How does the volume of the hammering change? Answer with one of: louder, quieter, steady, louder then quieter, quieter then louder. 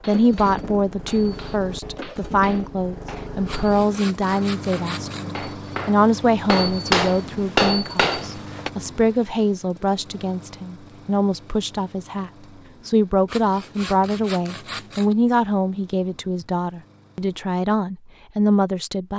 louder.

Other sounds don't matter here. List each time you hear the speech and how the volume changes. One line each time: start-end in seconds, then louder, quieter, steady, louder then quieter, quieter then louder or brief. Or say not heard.
0.1-19.1 steady.